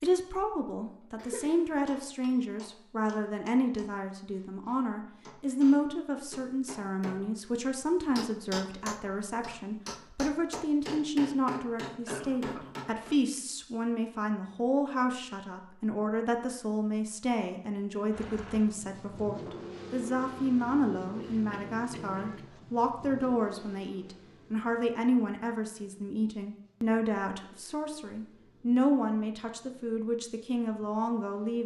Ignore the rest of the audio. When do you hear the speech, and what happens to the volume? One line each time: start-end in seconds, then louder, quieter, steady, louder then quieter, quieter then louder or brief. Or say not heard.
0.0-31.6 steady.